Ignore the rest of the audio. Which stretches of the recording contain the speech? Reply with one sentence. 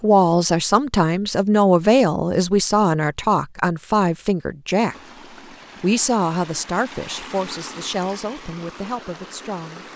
You can hear the speech from 0.0 to 5.0 s and from 5.8 to 9.9 s.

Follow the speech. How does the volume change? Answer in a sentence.
The loudness of the speech goes down.